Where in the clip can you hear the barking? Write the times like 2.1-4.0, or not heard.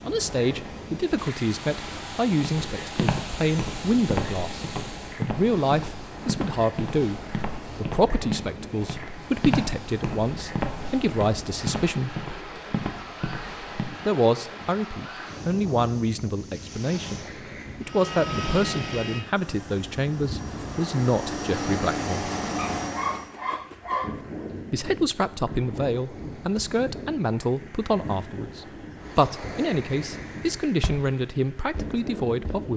22.6-24.2.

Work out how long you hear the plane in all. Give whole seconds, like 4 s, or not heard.
11 s.